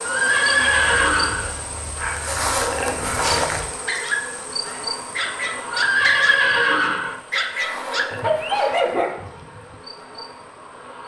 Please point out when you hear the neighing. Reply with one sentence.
You can hear the neighing from 0.0 to 1.5 s and from 5.7 to 7.2 s.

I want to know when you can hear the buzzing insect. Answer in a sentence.
The buzzing insect can be heard from 0.0 to 11.0 s.